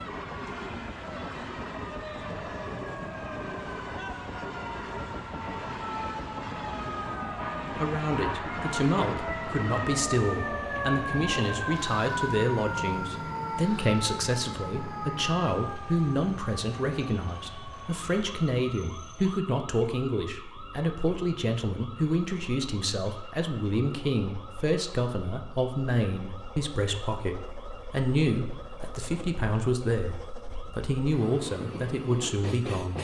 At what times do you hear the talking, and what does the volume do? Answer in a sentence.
The talking can be heard from 7.7 to 32.9 s, at a steady volume.